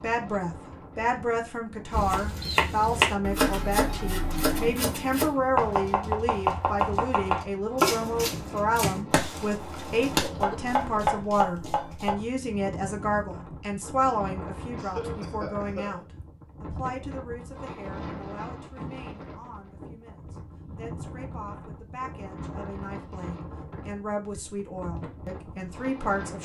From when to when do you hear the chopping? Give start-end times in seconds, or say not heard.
1.9-12.2.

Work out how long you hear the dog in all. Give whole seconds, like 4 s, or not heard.
not heard.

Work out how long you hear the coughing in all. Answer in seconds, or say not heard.
2 s.